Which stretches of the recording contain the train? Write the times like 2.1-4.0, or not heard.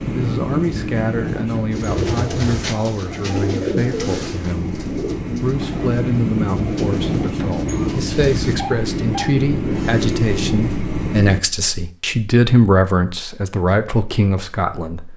0.0-11.4.